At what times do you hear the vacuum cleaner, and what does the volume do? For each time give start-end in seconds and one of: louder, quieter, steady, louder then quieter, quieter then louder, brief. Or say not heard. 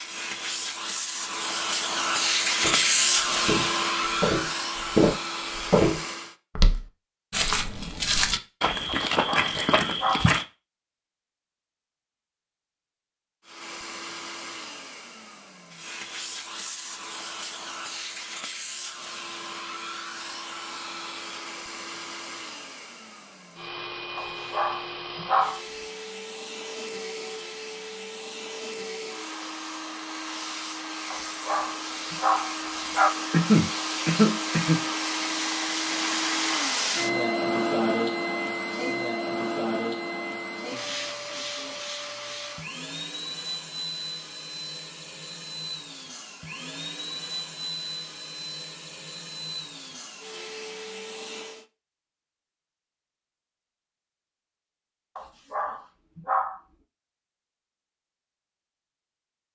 0.0-6.3 louder then quieter
13.4-51.6 louder then quieter.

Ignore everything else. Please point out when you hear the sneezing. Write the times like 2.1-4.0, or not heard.
33.3-34.8.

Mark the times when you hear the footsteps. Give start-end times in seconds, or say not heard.
2.6-10.4.